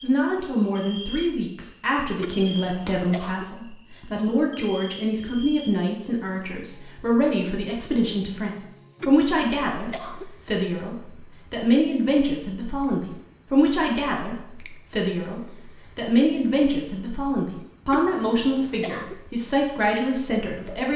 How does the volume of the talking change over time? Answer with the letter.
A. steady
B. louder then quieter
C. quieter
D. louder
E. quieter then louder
A.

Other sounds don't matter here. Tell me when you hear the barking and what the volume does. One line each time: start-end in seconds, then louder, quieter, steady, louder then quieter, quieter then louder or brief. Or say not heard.
not heard.